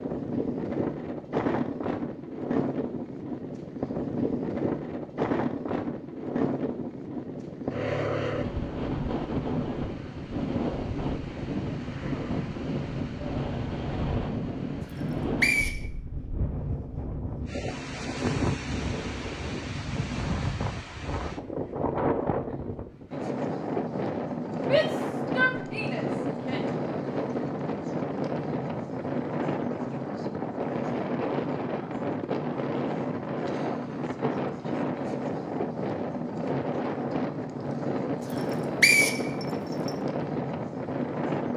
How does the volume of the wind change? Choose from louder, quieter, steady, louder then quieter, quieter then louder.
steady.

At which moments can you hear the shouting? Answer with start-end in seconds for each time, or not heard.
24.6-26.6.